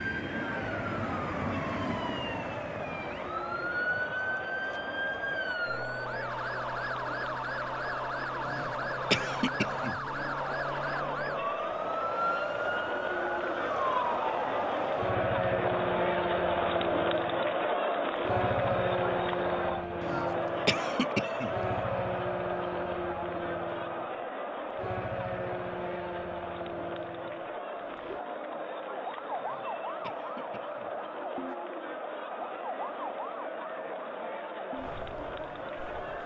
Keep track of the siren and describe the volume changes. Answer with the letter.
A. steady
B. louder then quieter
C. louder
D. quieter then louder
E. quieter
E.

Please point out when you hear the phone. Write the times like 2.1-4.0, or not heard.
not heard.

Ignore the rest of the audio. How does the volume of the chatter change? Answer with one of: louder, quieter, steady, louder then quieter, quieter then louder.
louder then quieter.